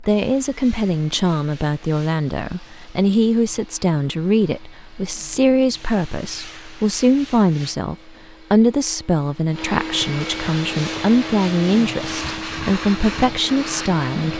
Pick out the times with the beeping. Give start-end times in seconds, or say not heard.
not heard.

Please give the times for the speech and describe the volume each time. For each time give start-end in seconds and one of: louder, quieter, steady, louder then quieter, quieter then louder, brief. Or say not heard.
0.0-14.3 steady.